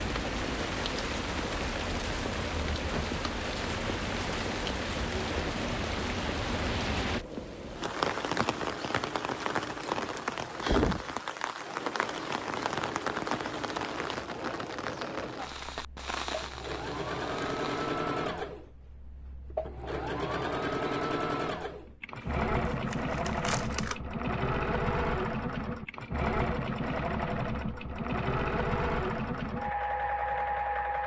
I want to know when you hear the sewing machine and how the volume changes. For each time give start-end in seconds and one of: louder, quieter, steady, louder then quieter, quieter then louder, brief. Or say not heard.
0.0-31.0 louder.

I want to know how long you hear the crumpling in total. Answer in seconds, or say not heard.
2 s.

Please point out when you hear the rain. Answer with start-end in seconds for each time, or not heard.
0.0-18.0.